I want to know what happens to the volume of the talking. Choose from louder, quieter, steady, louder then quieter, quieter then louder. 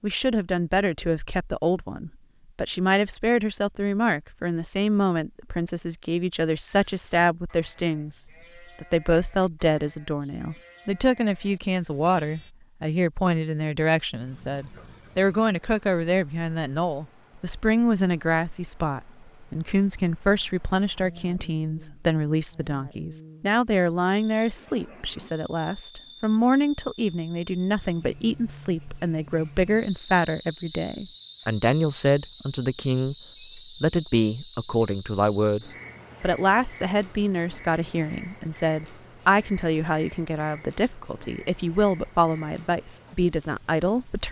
steady.